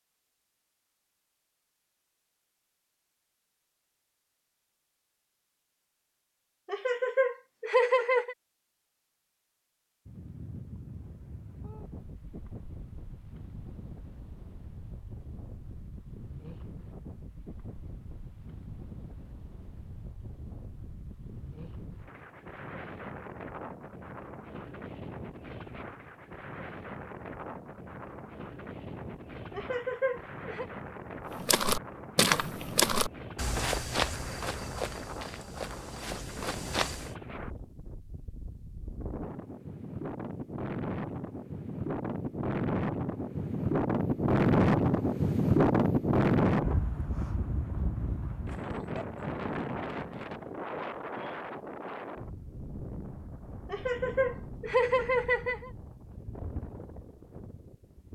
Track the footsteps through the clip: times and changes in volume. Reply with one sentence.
You can hear the footsteps from 31.4 to 37.1 s, getting quieter.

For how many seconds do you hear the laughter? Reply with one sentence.
The laughter can be heard for 5 seconds in total.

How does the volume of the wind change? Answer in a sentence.
The volume of the wind goes up, then down.